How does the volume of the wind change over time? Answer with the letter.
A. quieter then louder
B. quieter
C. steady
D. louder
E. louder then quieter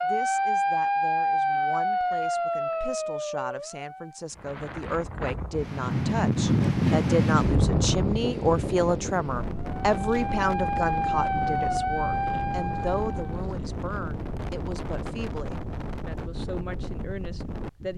B.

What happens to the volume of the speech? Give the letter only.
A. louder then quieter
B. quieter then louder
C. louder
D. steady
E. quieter
A.